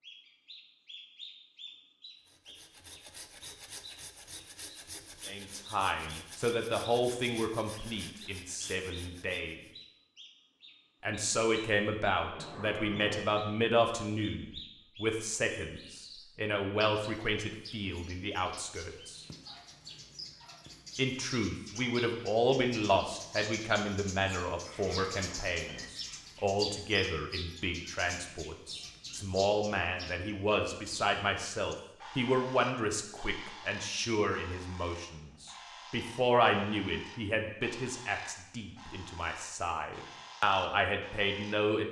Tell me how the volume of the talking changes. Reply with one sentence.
The volume of the talking stays about the same.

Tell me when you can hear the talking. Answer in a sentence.
The talking can be heard from 5.2 to 9.6 s, from 11.0 to 19.2 s and from 20.9 to 41.8 s.